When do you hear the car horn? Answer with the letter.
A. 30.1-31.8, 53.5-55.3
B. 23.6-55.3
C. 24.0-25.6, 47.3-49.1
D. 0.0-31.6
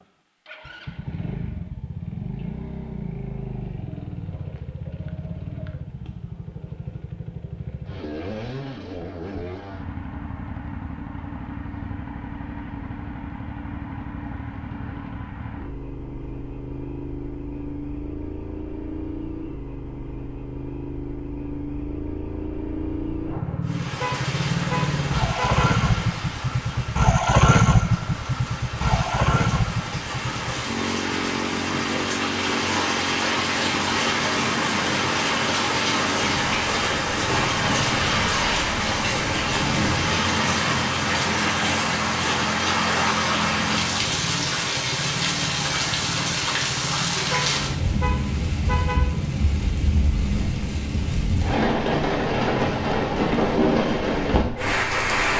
C.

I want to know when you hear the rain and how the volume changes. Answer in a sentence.
You can hear the rain from 23.6 to 55.3 s, getting louder.